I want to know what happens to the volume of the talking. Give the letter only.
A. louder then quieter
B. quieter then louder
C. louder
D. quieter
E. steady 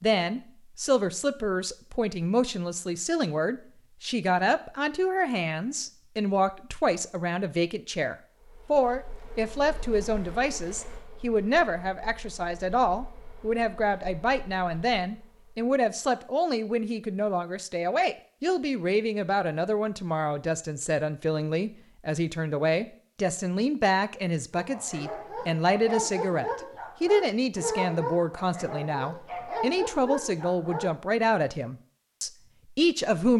E.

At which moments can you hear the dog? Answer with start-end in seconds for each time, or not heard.
24.5-30.9.